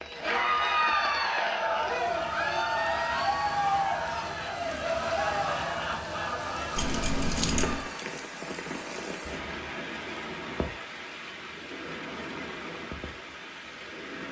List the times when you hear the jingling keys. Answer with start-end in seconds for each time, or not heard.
6.8-7.8.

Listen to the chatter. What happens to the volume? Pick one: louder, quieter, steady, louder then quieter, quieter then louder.
quieter.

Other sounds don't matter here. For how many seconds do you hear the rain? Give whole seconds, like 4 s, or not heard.
14 s.